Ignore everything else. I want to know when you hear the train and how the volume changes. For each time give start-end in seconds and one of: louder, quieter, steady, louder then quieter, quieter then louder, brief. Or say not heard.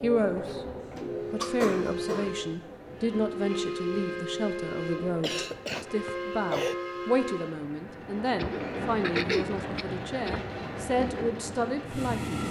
0.0-12.4 steady.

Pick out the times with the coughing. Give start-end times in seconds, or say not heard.
0.5-2.4, 5.2-6.8, 8.3-10.5.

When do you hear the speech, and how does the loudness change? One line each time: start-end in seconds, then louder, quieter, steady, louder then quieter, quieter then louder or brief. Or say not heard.
0.0-0.7 brief
1.3-12.4 steady.